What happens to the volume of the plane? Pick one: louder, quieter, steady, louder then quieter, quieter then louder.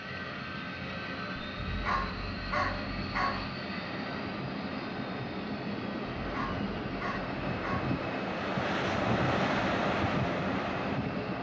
steady.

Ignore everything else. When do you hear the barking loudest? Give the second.
3 s.